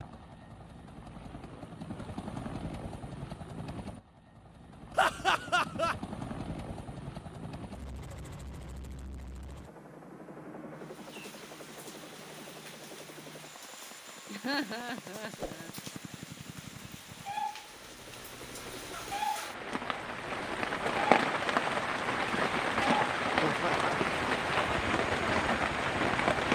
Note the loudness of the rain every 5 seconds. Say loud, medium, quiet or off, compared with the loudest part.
off, off, quiet, quiet, loud, loud.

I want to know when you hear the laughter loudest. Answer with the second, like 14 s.
5 s.